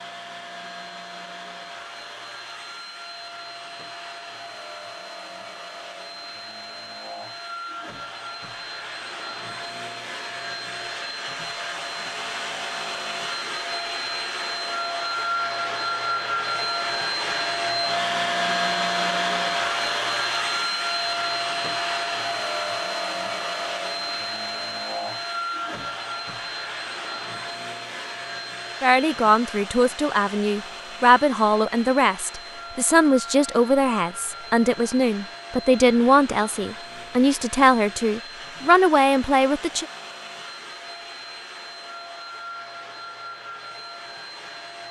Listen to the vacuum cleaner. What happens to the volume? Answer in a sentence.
The volume of the vacuum cleaner goes up, then down.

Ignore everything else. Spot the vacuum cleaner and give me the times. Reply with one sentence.
The vacuum cleaner can be heard from 0.0 to 44.8 s.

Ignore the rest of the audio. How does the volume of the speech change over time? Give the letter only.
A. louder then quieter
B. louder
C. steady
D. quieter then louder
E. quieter
C.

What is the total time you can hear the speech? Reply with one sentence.
The speech can be heard for 11 seconds in total.